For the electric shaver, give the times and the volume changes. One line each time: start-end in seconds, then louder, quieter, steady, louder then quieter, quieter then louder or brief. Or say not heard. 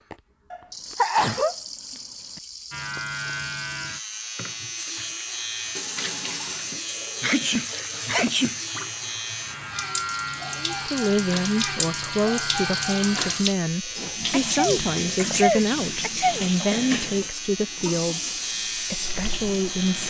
2.7-20.0 steady.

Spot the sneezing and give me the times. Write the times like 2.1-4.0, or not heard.
0.5-1.6, 7.2-8.6, 14.3-16.4.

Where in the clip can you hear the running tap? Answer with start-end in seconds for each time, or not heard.
0.1-20.0.